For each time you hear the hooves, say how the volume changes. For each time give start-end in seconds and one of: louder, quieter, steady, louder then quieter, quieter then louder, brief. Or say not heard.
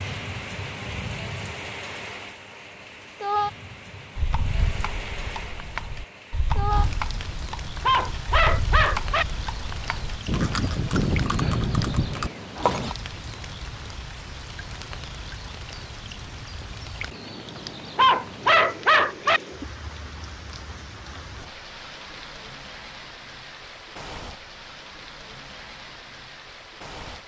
4.2-12.9 louder.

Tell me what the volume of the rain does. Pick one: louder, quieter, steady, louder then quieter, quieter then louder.
quieter.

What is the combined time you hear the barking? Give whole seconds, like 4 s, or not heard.
3 s.